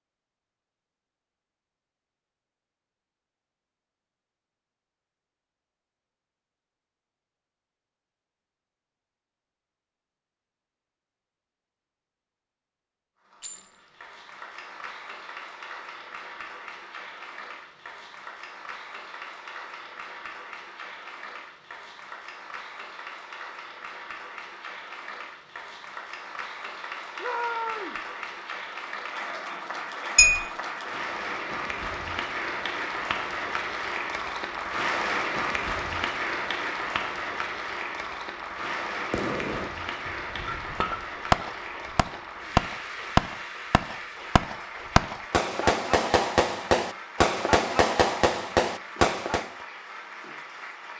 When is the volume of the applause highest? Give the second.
35 s.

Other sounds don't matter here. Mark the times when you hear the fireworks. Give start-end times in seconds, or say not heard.
39.1-49.5.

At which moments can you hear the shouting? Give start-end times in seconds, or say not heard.
27.1-28.0.